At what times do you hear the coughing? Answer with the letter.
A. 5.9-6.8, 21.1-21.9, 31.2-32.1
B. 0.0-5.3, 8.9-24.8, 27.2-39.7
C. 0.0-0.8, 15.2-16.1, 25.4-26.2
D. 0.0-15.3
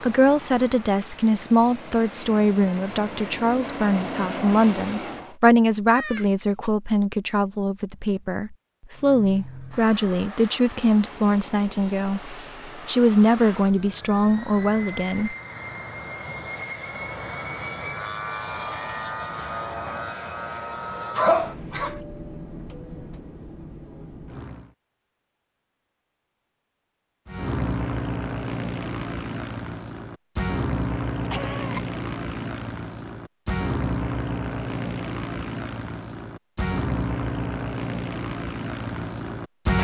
A.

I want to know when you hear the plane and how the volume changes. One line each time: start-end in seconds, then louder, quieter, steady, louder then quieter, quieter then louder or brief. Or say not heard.
0.0-5.3 louder
8.9-24.8 louder then quieter
27.2-39.7 steady.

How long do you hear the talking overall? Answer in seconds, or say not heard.
15 s.